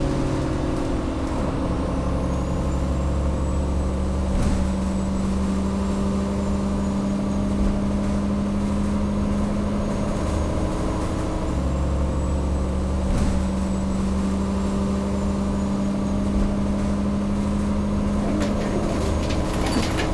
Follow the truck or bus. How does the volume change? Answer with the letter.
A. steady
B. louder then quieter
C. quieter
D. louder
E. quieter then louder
A.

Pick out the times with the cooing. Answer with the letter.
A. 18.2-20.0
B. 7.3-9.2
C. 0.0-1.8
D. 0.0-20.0
A.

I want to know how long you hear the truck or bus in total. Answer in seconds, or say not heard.
20 s.